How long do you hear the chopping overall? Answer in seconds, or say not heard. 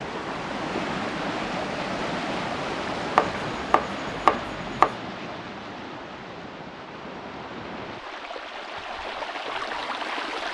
2 s.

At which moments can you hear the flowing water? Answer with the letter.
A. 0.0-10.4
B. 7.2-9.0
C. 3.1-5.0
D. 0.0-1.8
A.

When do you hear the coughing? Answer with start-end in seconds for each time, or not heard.
not heard.